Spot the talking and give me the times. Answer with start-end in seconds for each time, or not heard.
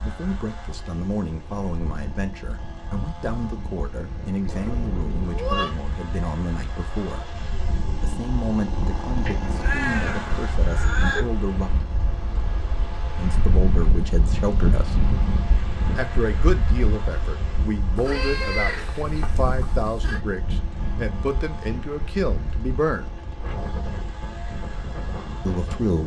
0.0-7.2, 8.0-11.7, 13.2-15.1, 15.9-23.1, 25.4-26.0.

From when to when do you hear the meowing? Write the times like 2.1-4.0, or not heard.
4.5-5.8, 9.2-11.2, 17.9-20.2.